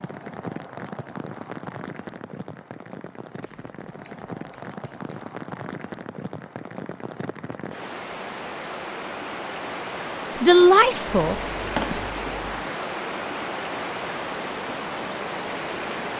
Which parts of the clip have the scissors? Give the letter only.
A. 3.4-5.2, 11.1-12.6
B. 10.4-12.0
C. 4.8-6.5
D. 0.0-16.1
A.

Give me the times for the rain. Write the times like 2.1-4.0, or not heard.
0.0-16.1.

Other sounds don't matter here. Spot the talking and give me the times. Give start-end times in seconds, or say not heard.
10.4-12.0.